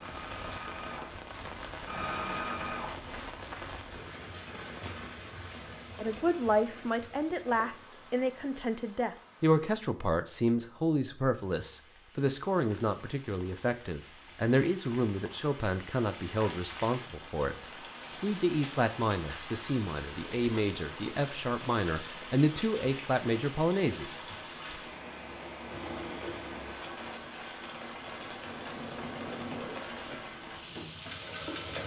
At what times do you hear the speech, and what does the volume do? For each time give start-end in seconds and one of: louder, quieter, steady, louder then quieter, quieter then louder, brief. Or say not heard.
6.0-24.2 steady.